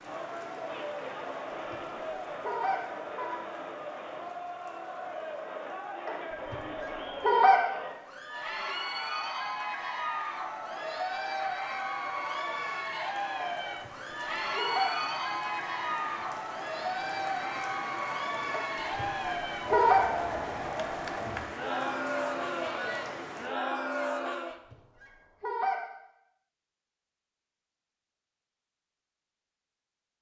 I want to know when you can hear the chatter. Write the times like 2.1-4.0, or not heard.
0.0-24.6.